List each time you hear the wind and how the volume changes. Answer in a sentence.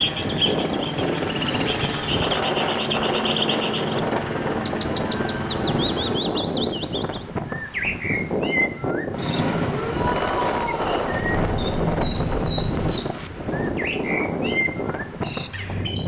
The wind can be heard from 0.0 to 16.0 s, at a steady volume.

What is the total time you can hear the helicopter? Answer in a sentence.
The helicopter can be heard for 10 seconds in total.